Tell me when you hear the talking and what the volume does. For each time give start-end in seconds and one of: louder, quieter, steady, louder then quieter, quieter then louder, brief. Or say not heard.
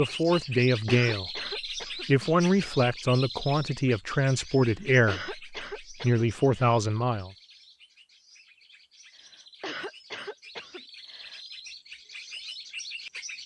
0.0-7.3 steady.